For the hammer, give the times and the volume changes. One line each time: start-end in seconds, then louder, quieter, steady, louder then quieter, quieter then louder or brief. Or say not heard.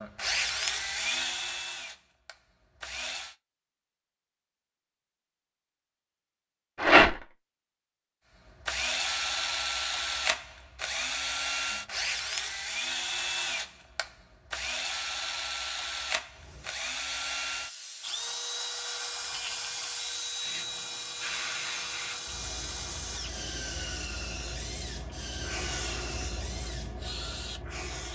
not heard.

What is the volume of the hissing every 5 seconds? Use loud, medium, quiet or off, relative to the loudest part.
off, off, off, loud, loud, loud.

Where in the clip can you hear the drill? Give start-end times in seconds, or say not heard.
0.0-3.4, 8.4-28.1.